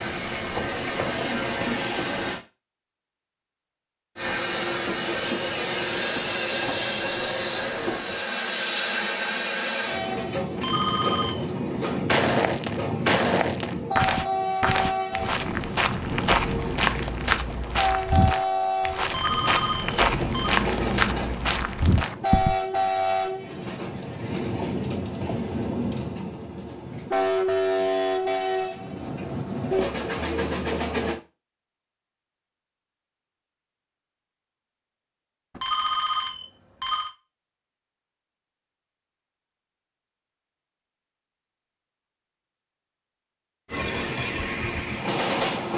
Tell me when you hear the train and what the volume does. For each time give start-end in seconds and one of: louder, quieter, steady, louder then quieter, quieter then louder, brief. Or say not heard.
0.0-2.4 brief
4.2-31.2 steady
43.7-45.7 brief.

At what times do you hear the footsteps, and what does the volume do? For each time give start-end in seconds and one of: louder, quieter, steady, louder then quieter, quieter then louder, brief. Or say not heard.
12.1-22.6 steady.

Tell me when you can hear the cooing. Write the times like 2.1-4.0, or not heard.
not heard.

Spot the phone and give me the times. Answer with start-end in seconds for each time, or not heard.
10.6-11.4, 19.1-20.6, 35.5-37.1.